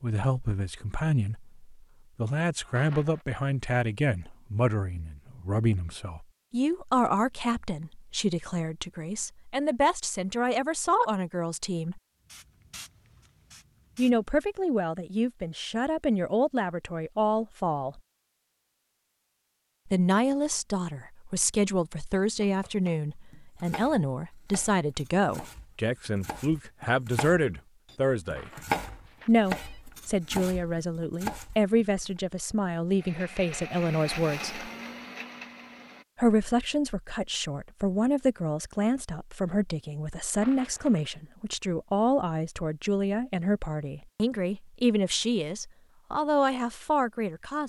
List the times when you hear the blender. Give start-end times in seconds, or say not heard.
33.0-36.0.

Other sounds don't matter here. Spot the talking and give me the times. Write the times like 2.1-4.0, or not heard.
0.0-12.0, 13.9-18.0, 19.9-28.5, 29.2-34.6, 36.1-47.6.